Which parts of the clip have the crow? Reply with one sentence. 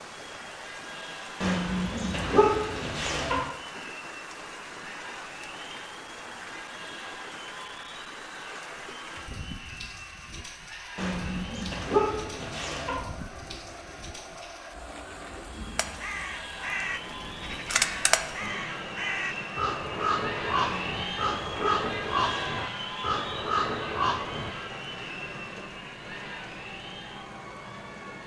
You can hear the crow from 15.8 to 24.5 s.